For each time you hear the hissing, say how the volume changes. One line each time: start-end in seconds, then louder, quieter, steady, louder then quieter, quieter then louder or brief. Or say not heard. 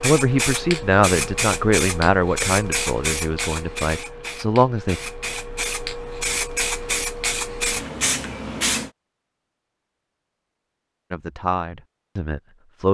0.0-8.9 quieter then louder.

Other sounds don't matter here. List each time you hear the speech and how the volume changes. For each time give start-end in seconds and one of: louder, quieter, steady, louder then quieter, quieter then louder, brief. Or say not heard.
0.0-5.0 quieter then louder
11.1-12.8 brief.